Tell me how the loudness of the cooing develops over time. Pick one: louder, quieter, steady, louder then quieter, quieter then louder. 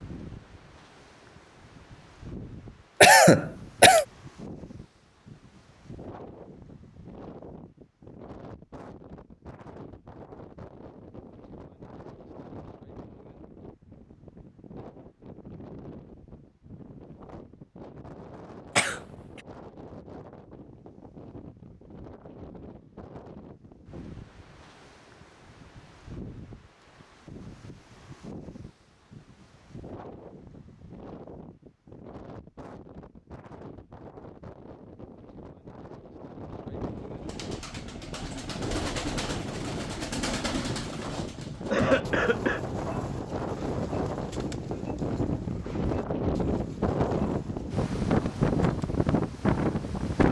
quieter.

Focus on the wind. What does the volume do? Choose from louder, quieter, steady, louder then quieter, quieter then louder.
louder.